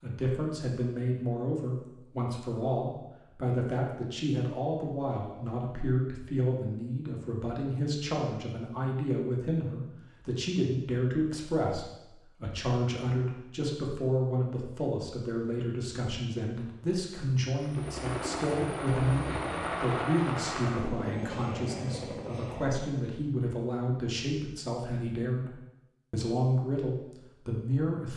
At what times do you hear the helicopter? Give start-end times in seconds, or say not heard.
17.6-22.9.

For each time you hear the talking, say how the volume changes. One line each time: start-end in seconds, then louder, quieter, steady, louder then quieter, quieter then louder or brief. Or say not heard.
0.0-28.1 steady.